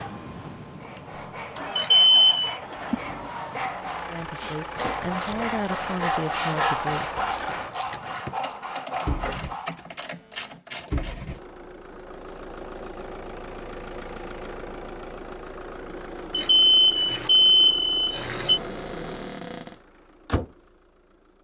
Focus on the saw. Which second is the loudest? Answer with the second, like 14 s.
7 s.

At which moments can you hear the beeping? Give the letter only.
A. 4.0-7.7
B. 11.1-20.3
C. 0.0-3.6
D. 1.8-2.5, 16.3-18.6
D.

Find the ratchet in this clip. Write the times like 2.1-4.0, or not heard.
4.3-11.4.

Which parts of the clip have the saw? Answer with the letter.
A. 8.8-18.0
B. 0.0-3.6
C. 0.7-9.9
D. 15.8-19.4
C.